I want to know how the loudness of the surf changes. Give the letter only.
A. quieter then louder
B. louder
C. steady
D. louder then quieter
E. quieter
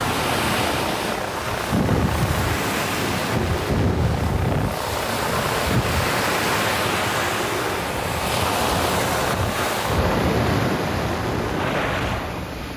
C.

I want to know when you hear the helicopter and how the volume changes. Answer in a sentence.
The helicopter can be heard from 0.0 to 12.7 s, at a steady volume.